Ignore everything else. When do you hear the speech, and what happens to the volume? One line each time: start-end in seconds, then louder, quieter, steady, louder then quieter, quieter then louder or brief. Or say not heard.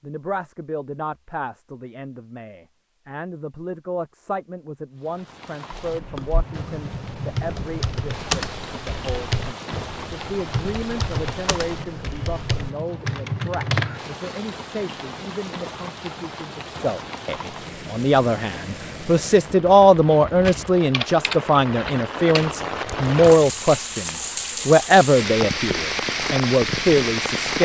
0.0-27.6 louder.